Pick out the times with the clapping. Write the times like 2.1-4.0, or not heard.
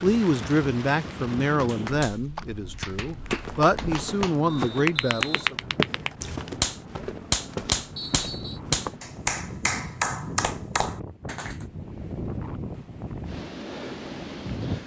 1.4-11.7.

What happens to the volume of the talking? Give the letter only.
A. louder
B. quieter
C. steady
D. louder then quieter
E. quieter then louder
E.